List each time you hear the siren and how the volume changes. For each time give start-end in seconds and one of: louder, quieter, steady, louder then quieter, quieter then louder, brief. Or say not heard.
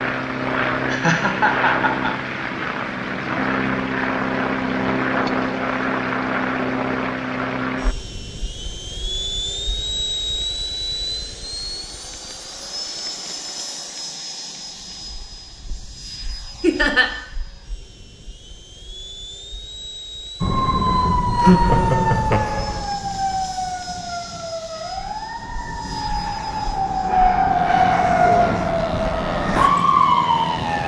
20.4-30.8 quieter then louder.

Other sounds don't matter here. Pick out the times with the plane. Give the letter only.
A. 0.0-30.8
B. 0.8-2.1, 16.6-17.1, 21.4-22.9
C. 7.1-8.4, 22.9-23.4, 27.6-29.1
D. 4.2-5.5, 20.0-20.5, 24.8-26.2
A.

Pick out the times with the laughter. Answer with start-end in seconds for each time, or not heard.
0.8-2.1, 16.6-17.1, 21.4-22.9.